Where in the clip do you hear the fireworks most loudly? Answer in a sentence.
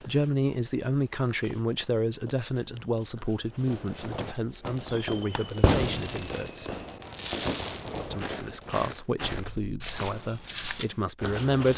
The volume of the fireworks peaks at 6 seconds.